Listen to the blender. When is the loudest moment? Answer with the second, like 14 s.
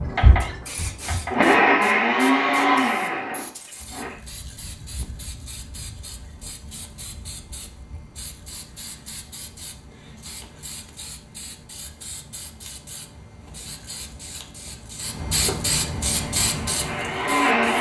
2 s.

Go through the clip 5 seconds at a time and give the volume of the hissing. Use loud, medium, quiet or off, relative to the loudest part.
quiet, quiet, quiet, loud.